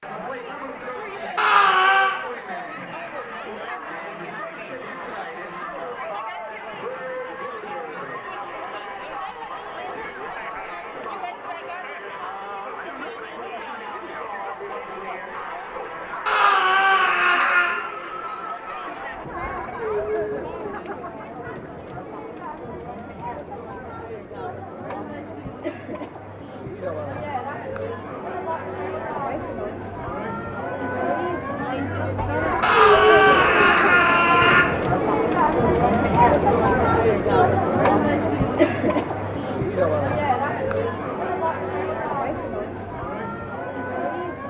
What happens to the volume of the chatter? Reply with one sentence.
The loudness of the chatter goes up.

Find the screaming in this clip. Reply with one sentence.
The screaming can be heard from 1.4 to 2.1 s, from 16.2 to 17.8 s and from 32.6 to 34.6 s.